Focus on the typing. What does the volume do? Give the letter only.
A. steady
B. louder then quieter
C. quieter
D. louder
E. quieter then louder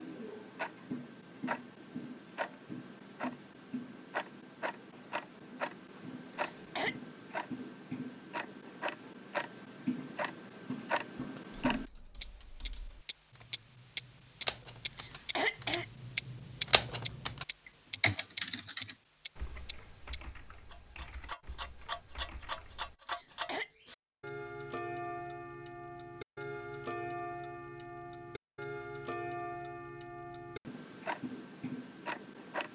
B.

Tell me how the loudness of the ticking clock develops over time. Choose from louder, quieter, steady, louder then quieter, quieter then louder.
louder then quieter.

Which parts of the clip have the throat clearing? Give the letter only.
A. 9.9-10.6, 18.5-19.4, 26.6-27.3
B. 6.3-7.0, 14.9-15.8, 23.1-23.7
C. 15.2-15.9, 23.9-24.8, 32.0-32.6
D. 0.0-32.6
B.